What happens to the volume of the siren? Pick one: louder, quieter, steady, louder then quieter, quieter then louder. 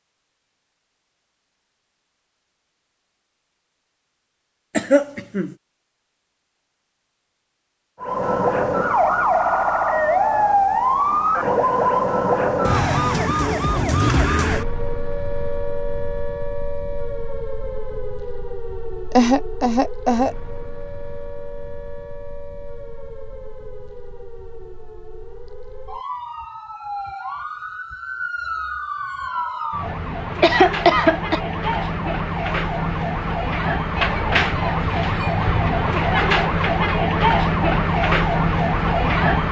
quieter then louder.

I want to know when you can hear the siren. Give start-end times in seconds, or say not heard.
8.0-39.4.